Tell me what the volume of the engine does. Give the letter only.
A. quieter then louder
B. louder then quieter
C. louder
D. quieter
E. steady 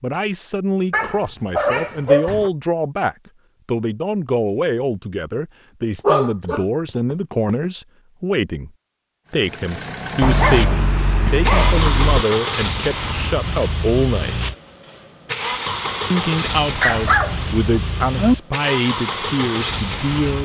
E.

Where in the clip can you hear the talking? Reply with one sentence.
The talking can be heard from 0.0 to 8.7 s, from 9.3 to 14.3 s and from 16.1 to 20.4 s.